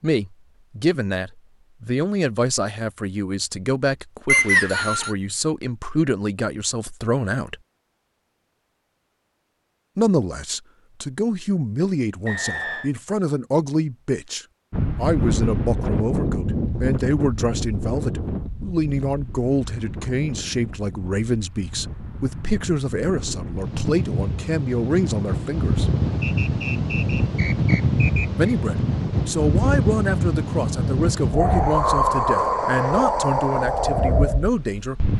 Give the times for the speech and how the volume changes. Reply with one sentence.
You can hear the speech from 0.0 to 7.5 s, at a steady volume; from 9.9 to 25.9 s, at a steady volume; and from 28.4 to 35.1 s, at a steady volume.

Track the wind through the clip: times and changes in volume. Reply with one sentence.
The wind can be heard from 14.7 to 35.1 s, getting quieter then louder.